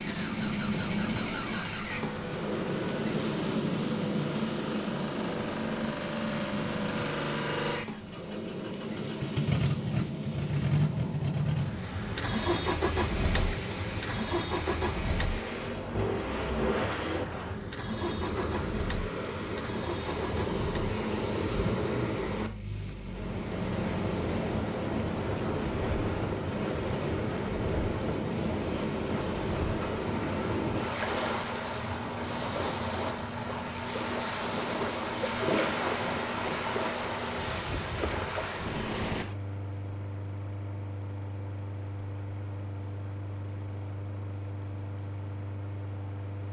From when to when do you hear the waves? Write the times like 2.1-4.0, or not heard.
0.0-39.2.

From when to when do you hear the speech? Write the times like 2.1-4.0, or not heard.
not heard.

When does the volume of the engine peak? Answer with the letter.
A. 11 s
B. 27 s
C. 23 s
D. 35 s
A.